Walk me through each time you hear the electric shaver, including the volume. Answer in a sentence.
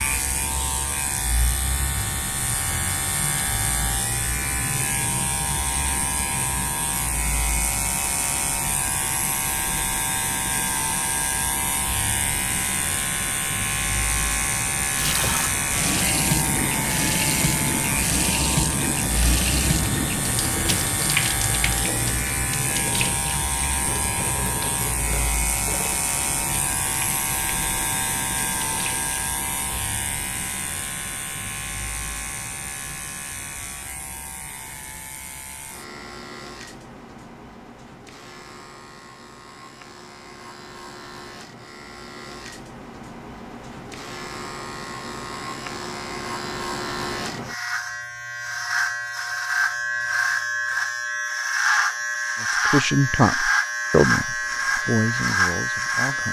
You can hear the electric shaver from 0.0 to 56.2 s, getting quieter then louder.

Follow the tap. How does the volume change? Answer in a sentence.
The volume of the tap goes down.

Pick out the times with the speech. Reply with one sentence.
The speech can be heard from 52.4 to 56.2 s.